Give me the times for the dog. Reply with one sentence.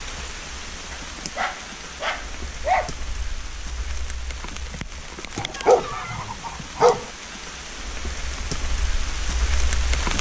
The dog can be heard from 0.9 to 2.9 s and from 5.3 to 7.0 s.